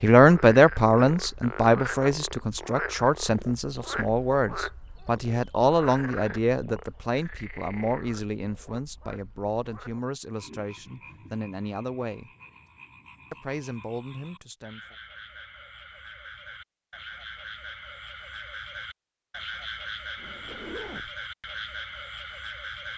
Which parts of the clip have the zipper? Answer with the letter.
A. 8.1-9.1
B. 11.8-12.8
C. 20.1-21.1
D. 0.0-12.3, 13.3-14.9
C.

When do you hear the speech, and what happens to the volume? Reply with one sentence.
The speech can be heard from 0.0 to 12.3 s, getting quieter; and briefly from 13.3 to 14.9 s.